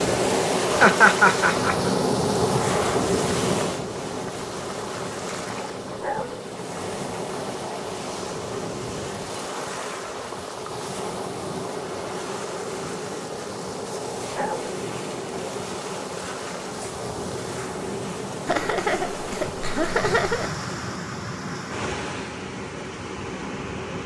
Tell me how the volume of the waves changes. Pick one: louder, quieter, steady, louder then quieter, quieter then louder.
quieter.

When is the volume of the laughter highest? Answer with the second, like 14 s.
1 s.